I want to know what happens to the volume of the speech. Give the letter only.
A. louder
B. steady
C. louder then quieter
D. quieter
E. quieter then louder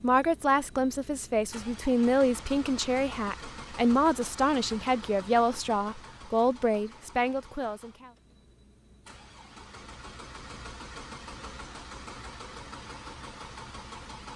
B.